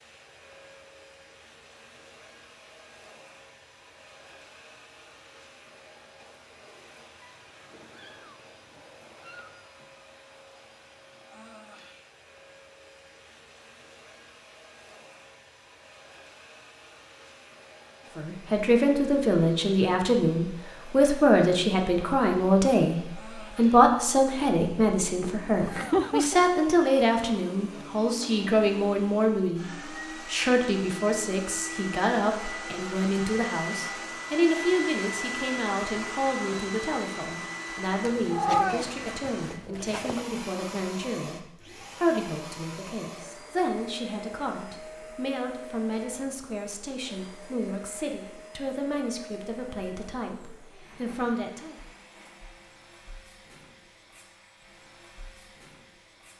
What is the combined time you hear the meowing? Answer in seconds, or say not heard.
6 s.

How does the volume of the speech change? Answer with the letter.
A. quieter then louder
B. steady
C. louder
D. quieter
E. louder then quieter
D.